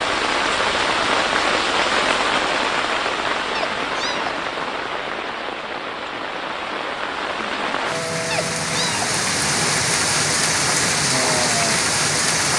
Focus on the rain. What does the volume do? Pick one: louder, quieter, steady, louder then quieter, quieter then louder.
quieter then louder.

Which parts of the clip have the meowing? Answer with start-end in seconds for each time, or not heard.
3.5-4.5, 8.3-9.2.